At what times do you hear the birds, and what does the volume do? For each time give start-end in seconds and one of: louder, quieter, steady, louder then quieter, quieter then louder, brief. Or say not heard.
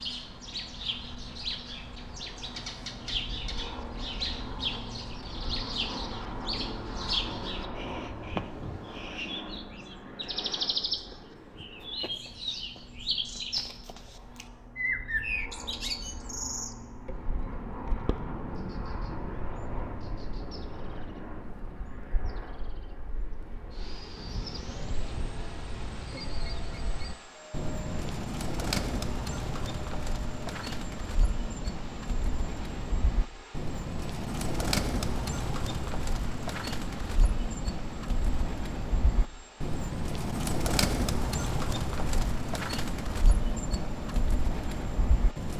0.0-45.5 quieter then louder.